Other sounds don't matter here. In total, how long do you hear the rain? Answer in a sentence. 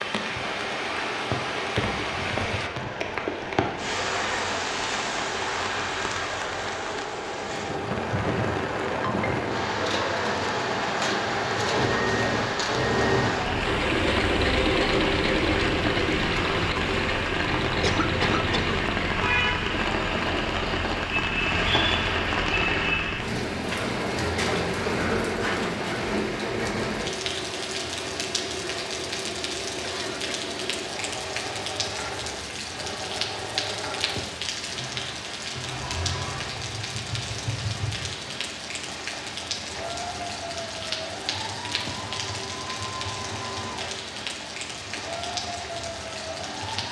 You can hear the rain for 47 seconds altogether.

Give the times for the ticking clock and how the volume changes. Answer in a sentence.
The ticking clock can't be heard in this clip.